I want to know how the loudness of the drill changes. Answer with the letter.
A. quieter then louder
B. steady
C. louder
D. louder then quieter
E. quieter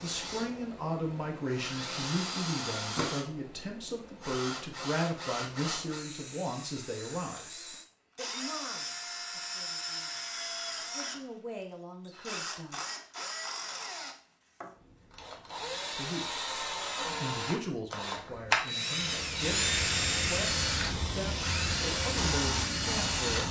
C.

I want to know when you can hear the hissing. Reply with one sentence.
The hissing can be heard from 19.1 to 23.4 s.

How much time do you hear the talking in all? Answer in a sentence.
The talking can be heard for 19 seconds in total.